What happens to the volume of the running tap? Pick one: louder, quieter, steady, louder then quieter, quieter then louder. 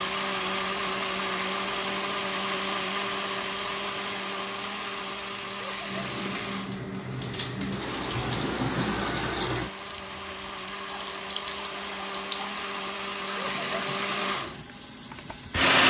louder then quieter.